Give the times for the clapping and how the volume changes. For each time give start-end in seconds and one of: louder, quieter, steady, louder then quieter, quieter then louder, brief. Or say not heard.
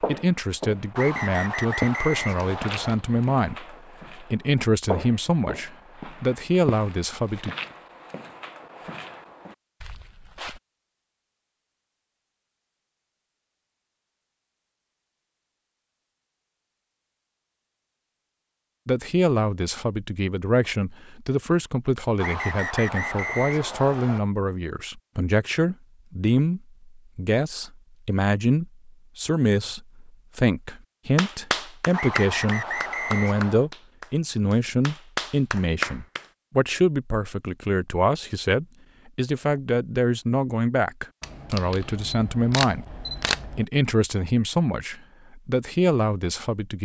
31.1-36.2 quieter then louder.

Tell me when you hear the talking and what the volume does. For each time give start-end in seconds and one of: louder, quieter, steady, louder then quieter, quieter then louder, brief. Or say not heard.
0.1-7.5 steady
18.9-46.8 steady.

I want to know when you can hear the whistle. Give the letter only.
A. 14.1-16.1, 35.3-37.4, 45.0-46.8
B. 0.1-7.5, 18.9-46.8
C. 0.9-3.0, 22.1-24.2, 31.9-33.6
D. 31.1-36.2
C.